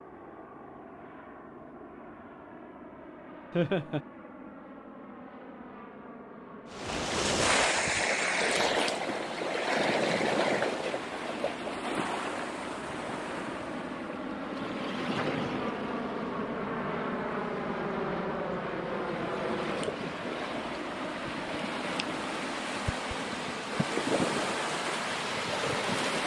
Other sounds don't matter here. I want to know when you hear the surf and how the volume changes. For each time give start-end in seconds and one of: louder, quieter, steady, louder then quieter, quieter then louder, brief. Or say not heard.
6.7-26.2 quieter then louder.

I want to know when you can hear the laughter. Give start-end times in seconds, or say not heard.
3.5-4.0.